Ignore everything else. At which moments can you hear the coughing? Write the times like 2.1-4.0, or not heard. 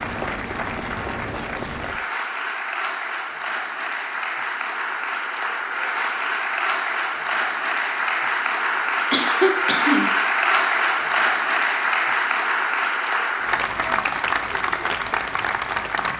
9.1-10.1.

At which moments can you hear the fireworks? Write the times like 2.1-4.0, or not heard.
not heard.